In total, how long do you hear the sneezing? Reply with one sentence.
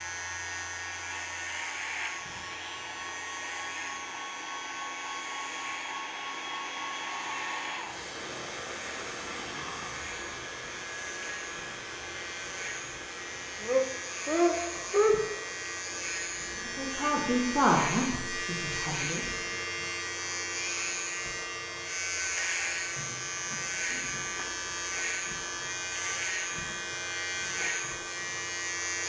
You can hear the sneezing for 4 seconds altogether.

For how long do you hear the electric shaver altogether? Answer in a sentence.
You can hear the electric shaver for 29 seconds altogether.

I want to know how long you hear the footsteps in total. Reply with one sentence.
You can't hear the footsteps here.